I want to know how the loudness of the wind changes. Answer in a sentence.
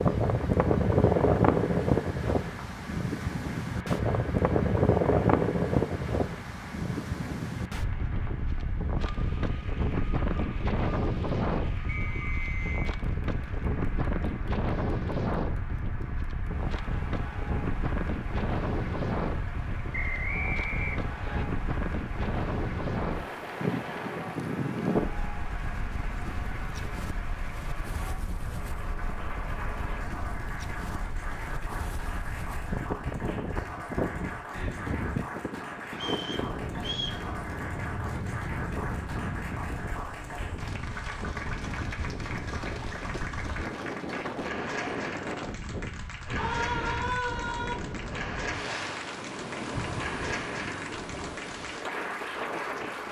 The loudness of the wind goes down.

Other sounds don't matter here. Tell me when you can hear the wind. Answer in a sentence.
The wind can be heard from 0.0 to 53.0 s.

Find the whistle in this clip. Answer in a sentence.
You can hear the whistle from 11.8 to 12.9 s, from 19.9 to 21.4 s and from 36.0 to 37.2 s.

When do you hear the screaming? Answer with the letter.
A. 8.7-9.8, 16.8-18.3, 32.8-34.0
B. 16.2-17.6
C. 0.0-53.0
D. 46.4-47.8
D.